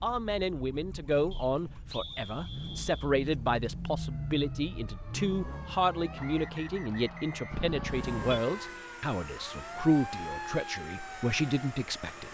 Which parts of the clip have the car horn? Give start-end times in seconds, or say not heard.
7.5-8.4.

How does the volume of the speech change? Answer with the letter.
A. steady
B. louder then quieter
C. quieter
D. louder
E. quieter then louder
A.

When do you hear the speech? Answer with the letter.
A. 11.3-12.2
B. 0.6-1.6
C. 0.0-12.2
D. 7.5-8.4
C.